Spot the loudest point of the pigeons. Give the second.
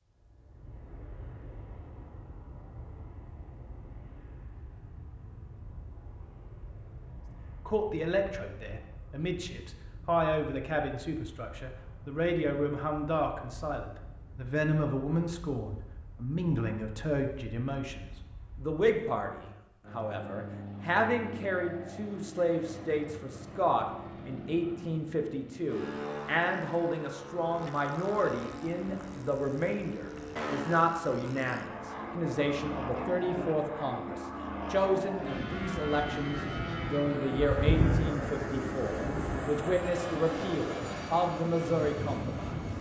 38 s.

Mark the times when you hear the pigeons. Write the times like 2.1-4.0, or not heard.
37.4-39.5.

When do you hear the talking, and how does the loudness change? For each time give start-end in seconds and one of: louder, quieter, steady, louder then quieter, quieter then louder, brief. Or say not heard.
7.7-42.6 steady.